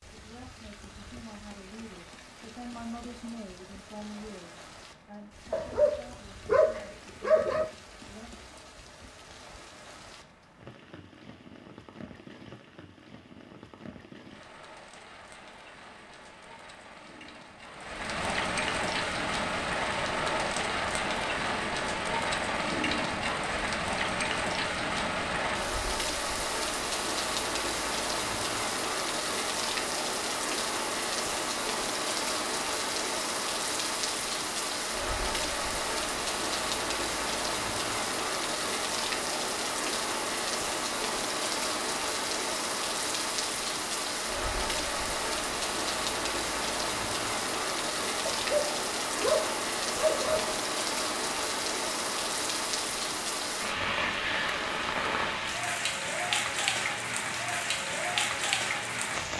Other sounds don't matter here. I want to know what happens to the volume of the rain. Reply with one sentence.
The loudness of the rain goes up.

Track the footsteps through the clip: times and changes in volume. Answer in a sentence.
You can't hear the footsteps here.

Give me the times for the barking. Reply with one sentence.
The barking can be heard from 5.5 to 7.7 s and from 48.2 to 50.6 s.